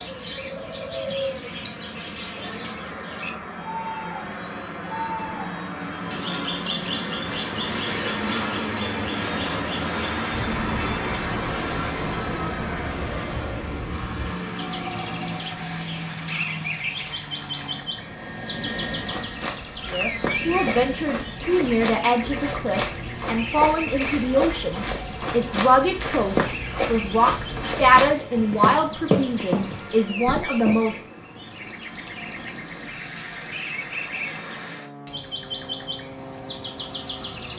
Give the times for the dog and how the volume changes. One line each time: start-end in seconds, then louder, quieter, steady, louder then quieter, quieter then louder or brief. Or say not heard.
not heard.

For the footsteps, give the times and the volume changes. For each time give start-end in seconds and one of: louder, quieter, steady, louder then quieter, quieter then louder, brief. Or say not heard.
18.9-30.8 louder.